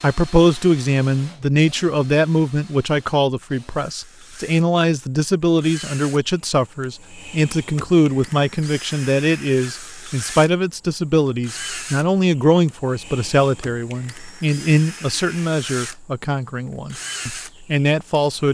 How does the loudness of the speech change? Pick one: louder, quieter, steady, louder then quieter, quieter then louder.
steady.